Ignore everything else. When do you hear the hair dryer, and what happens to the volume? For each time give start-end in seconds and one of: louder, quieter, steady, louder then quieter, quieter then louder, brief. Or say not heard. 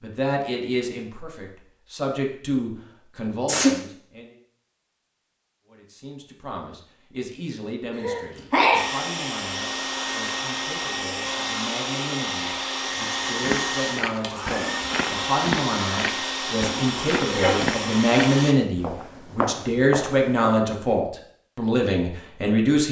8.8-18.6 steady.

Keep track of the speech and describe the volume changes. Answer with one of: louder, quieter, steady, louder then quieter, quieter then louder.
quieter then louder.